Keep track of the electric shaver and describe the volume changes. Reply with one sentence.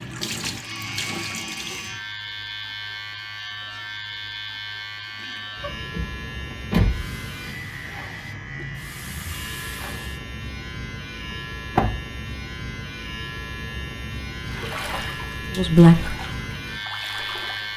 The loudness of the electric shaver stays about the same.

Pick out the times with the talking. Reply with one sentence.
The talking can be heard from 15.5 to 16.1 s.